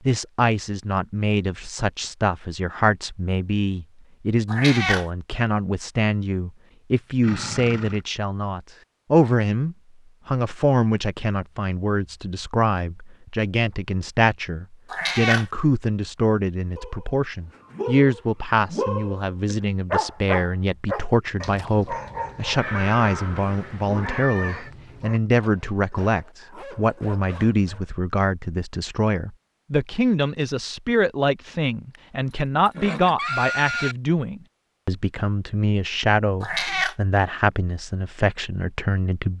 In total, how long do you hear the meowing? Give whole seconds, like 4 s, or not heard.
2 s.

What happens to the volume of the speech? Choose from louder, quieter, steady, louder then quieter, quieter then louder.
steady.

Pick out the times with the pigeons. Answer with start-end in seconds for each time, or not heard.
not heard.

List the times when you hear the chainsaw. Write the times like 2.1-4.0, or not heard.
not heard.